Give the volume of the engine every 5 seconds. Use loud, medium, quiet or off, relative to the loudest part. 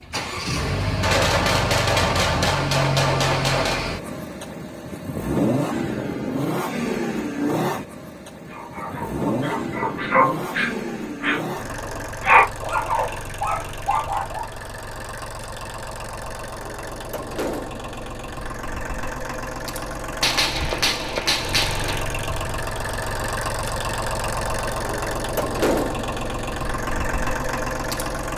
loud, loud, medium, medium, loud, loud.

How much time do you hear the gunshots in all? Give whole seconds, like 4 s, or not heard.
5 s.